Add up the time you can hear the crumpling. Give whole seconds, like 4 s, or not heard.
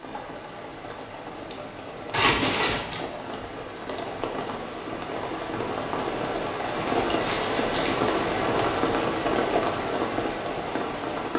2 s.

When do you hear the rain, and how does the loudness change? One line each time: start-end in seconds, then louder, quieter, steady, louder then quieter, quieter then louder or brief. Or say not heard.
0.0-11.3 louder.